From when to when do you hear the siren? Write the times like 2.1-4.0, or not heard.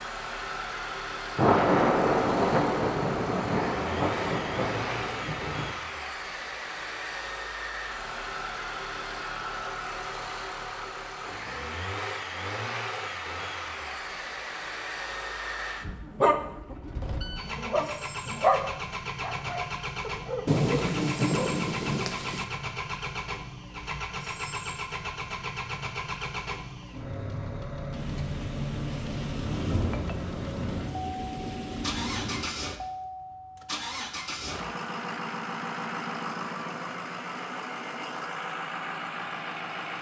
not heard.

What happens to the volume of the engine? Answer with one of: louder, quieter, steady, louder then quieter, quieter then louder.
steady.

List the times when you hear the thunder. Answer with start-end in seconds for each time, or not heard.
1.4-5.8, 20.4-22.4, 27.9-32.5.